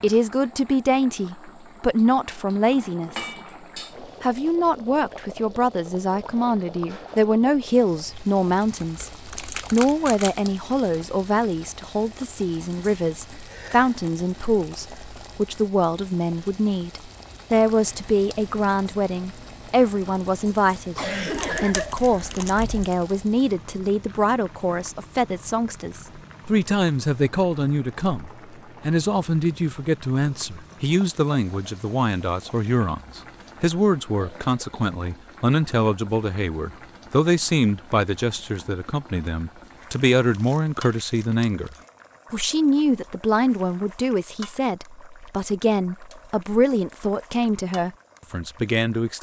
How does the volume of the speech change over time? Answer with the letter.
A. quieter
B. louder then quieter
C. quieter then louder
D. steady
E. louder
D.